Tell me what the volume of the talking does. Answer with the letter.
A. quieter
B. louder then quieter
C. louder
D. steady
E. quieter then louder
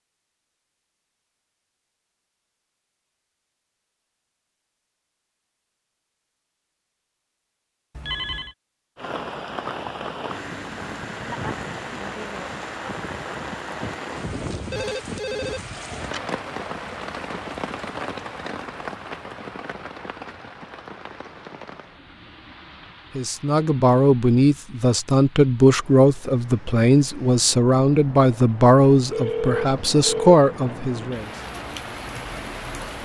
D.